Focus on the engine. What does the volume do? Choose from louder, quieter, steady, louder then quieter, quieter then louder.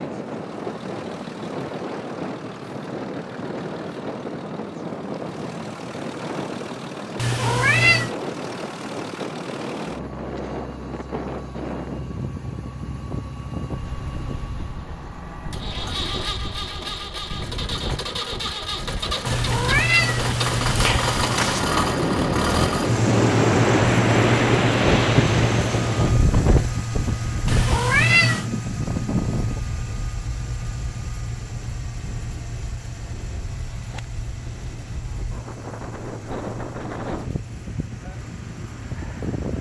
louder then quieter.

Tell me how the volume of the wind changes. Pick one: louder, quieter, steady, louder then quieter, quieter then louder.
louder then quieter.